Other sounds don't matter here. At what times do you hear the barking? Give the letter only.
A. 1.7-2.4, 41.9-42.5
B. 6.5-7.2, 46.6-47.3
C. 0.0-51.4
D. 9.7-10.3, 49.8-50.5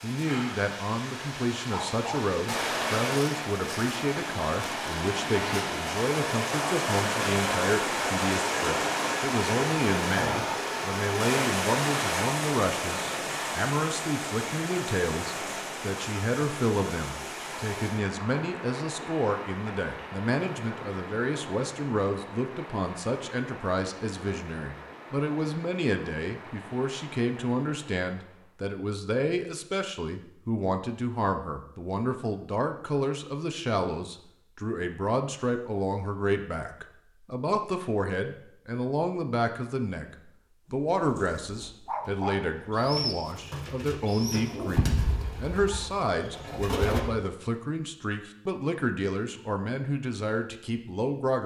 A.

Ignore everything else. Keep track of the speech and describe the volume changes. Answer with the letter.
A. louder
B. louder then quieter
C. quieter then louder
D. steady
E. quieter
D.